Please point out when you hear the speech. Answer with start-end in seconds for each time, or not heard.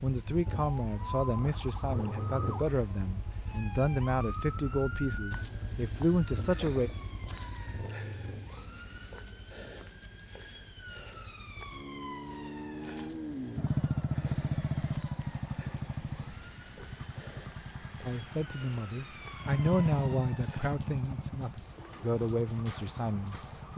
0.0-6.9, 18.1-23.7.